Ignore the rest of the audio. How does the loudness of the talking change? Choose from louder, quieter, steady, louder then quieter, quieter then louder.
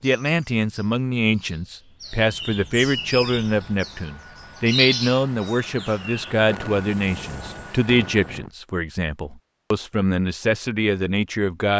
steady.